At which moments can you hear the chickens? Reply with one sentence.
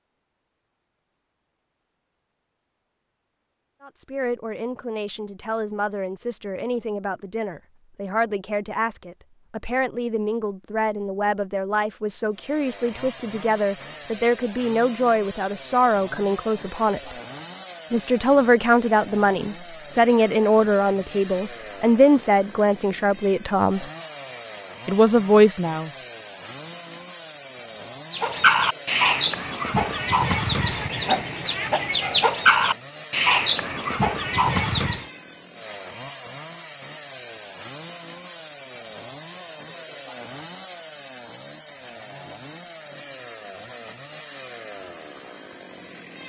The chickens can be heard from 28.1 to 35.0 s.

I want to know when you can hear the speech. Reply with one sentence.
The speech can be heard from 3.8 to 17.1 s, from 17.9 to 23.9 s and from 24.9 to 25.9 s.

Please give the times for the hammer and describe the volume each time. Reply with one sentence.
You can't hear the hammer here.